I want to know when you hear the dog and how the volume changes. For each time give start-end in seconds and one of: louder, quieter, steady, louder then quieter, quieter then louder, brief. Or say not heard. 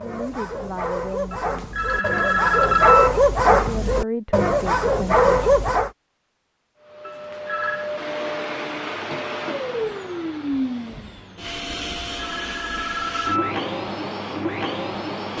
0.0-5.9 louder.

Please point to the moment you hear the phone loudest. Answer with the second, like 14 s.
3 s.